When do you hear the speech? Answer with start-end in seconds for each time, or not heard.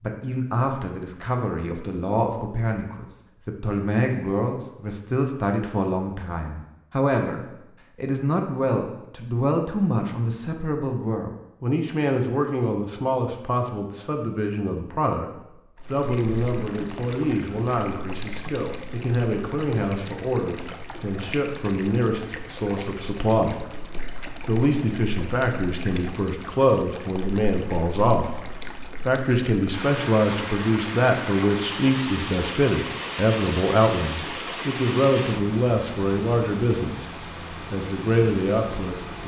0.0-37.1, 37.7-39.2.